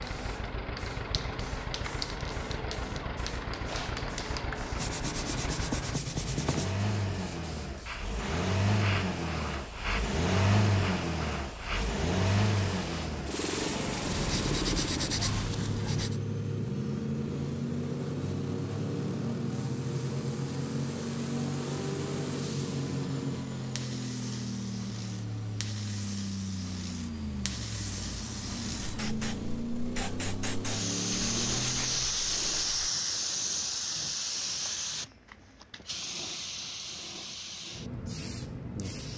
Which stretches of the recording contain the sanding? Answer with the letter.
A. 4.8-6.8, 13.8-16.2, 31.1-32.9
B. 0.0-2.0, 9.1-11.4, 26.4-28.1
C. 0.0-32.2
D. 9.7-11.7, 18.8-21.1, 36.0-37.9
A.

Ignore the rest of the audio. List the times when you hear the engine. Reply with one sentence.
You can hear the engine from 0.0 to 32.2 s.